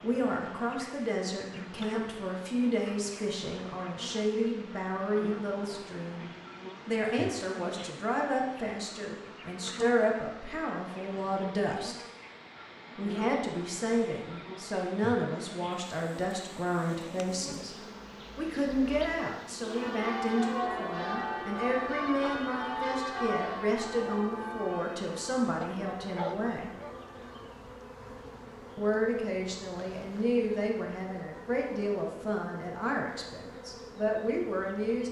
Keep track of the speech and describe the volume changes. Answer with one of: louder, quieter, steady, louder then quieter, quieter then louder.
steady.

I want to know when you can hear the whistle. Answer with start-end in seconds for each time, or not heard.
not heard.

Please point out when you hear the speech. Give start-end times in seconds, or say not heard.
0.0-12.1, 12.9-17.8, 18.4-26.7, 28.8-35.0.